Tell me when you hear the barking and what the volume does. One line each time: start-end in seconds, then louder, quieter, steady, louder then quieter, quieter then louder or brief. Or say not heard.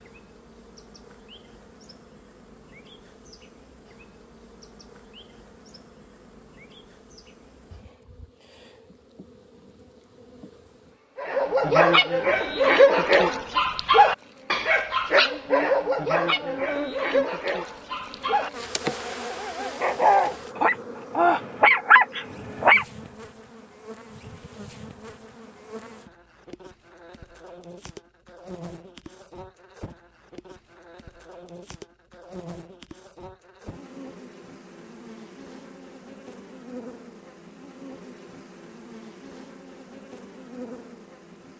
11.2-22.9 quieter then louder.